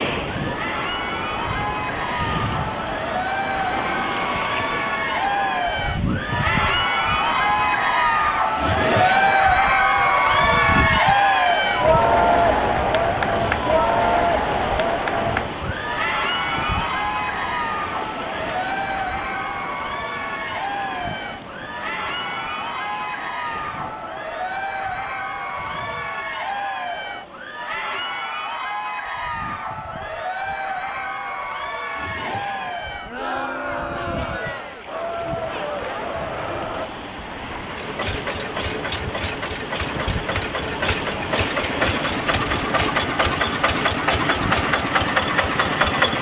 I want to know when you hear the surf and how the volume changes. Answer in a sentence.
The surf can be heard from 0.0 to 46.1 s, getting quieter then louder.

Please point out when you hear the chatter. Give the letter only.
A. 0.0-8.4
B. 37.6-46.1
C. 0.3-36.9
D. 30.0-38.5
C.